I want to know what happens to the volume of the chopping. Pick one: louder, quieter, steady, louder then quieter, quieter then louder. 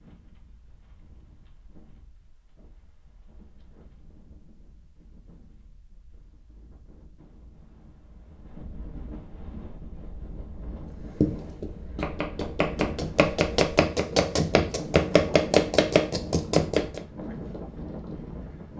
louder.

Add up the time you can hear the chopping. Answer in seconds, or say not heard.
6 s.